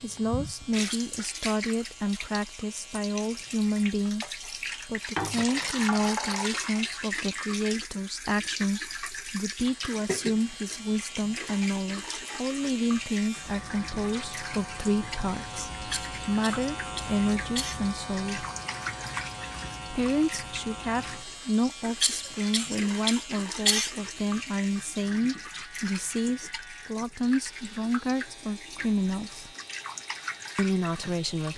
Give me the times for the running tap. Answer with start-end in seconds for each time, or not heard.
0.0-31.5.